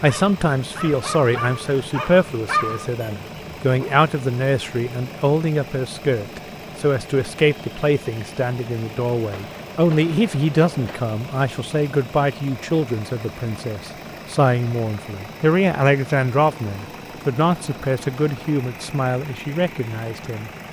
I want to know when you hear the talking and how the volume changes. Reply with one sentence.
You can hear the talking from 0.0 to 20.5 s, at a steady volume.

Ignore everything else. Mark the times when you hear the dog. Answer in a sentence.
You can hear the dog from 0.0 to 4.0 s.